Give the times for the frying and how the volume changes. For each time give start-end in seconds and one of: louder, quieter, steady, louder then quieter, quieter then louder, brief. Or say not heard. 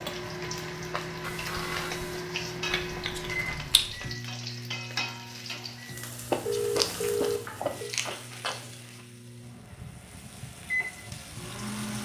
0.0-11.9 quieter.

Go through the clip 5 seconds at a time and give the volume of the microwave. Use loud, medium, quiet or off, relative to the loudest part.
loud, medium, loud.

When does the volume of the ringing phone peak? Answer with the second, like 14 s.
7 s.